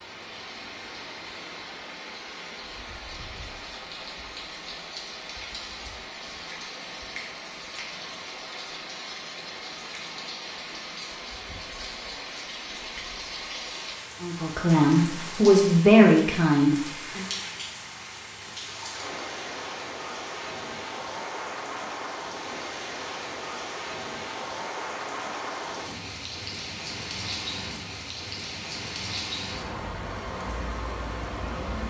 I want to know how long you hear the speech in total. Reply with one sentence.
You can hear the speech for 3 seconds altogether.